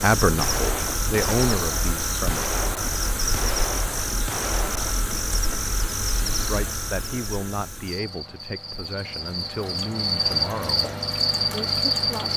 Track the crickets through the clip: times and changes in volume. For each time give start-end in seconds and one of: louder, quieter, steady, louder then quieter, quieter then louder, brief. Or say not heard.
0.0-12.3 quieter then louder.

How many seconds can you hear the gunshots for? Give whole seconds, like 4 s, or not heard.
5 s.